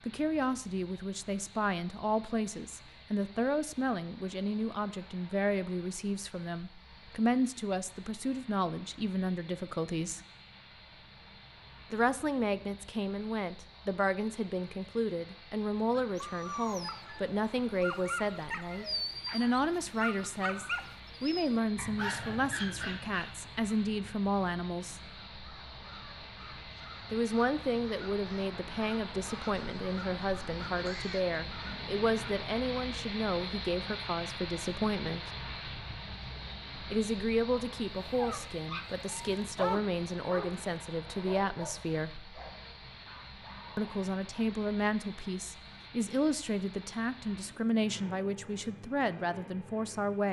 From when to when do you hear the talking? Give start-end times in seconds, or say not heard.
0.1-10.2, 11.9-25.0, 27.1-35.2, 36.9-42.1, 43.8-50.2.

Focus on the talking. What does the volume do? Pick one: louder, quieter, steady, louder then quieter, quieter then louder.
steady.